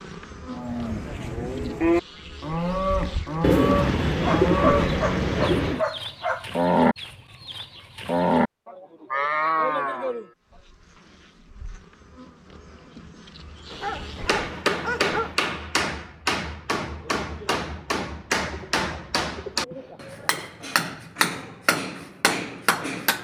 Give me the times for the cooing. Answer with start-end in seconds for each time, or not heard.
3.4-5.8, 18.4-20.5.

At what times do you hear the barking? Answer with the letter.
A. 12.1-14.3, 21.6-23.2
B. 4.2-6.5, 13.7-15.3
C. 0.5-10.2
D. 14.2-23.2
B.